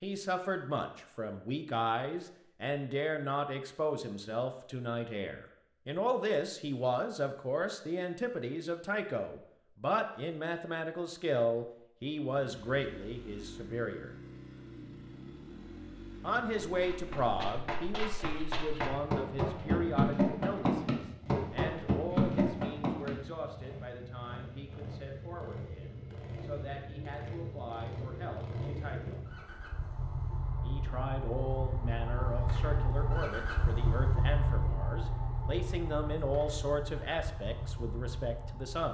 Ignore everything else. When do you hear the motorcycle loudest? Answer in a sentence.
The loudest moment of the motorcycle is at 34 seconds.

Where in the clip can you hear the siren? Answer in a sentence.
The siren can't be heard in this clip.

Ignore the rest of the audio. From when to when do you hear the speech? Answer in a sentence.
You can hear the speech from 0.0 to 14.2 s, from 16.2 to 29.2 s and from 30.6 to 38.8 s.